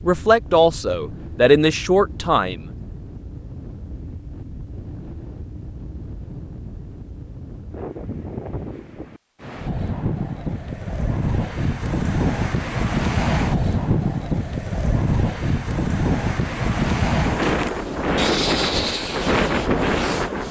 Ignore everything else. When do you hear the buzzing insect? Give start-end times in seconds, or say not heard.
not heard.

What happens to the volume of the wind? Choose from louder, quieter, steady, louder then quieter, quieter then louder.
louder.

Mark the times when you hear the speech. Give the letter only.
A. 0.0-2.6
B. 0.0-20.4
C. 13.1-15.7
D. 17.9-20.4
A.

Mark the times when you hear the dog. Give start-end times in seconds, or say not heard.
not heard.